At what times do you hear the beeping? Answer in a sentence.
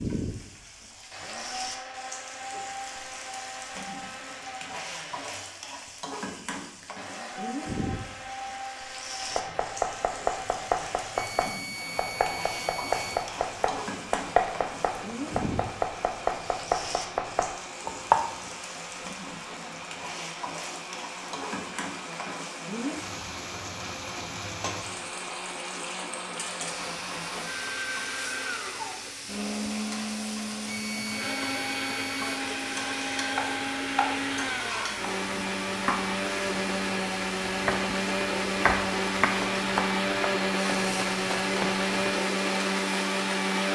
You can hear the beeping from 11.2 to 13.3 s and from 30.6 to 32.4 s.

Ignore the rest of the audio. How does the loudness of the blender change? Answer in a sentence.
The volume of the blender goes up.